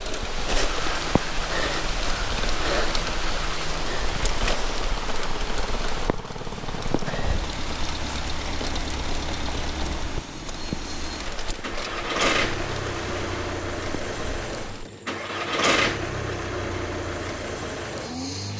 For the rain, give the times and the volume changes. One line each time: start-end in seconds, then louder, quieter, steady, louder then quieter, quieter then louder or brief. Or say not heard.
0.0-14.9 quieter.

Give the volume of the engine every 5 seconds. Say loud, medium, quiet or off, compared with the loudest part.
medium, medium, loud, loud.